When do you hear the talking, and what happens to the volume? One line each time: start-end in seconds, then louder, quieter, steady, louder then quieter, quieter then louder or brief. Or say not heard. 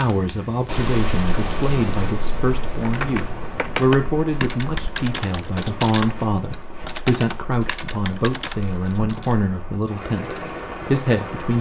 0.0-11.5 steady.